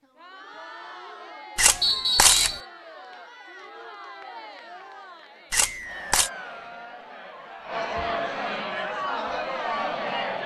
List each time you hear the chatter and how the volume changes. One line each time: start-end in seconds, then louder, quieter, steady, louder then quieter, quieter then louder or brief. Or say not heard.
0.0-10.4 louder.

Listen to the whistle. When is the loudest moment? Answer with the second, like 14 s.
2 s.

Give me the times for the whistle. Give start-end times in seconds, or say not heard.
1.8-2.6, 5.6-6.7.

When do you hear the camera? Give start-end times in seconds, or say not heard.
1.6-2.5, 5.5-6.3.